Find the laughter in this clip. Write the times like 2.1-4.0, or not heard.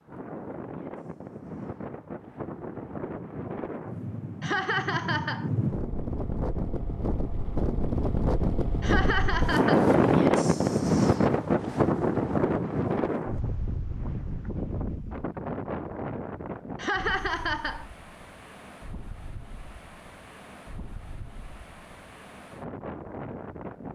4.4-5.5, 8.8-9.9, 16.8-17.9.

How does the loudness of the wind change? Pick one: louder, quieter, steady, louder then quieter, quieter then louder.
louder then quieter.